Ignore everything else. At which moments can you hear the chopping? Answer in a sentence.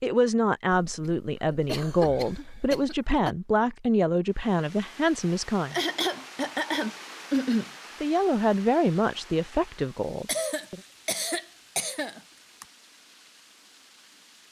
You can't hear the chopping here.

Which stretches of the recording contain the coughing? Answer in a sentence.
You can hear the coughing from 0.8 to 3.4 s, from 5.7 to 7.7 s and from 10.2 to 12.7 s.